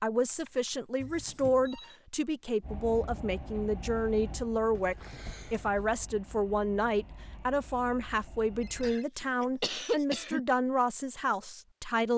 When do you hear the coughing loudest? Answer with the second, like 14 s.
10 s.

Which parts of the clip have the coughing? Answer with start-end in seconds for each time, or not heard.
1.0-1.7, 4.8-5.9, 8.8-10.4.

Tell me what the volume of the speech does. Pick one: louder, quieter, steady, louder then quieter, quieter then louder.
steady.